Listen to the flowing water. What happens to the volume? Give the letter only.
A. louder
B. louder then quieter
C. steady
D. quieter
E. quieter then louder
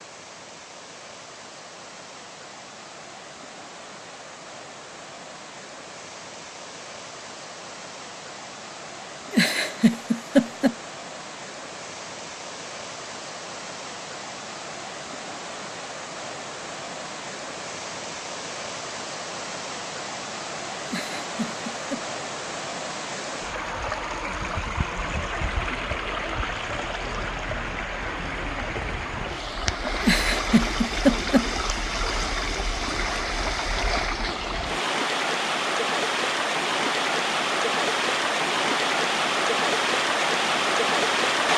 A.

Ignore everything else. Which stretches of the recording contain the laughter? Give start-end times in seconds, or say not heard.
9.3-10.8, 20.9-22.0, 30.0-31.5.